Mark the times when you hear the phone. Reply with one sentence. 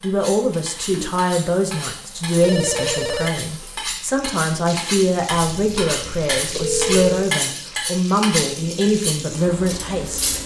You can hear the phone from 2.4 to 3.4 s and from 5.3 to 7.3 s.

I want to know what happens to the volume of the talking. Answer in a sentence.
The volume of the talking stays about the same.